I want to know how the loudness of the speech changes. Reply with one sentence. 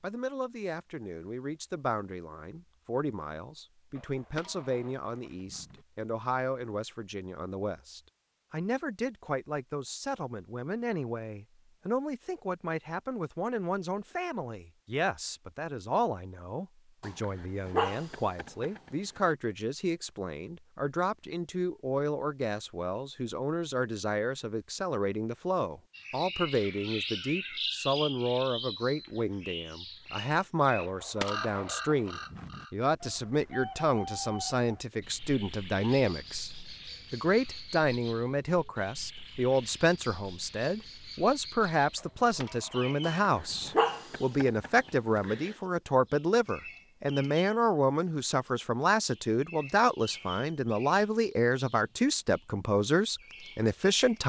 The loudness of the speech goes up.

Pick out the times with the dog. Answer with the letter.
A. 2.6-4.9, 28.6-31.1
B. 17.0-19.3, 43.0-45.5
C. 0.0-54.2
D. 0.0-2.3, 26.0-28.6
B.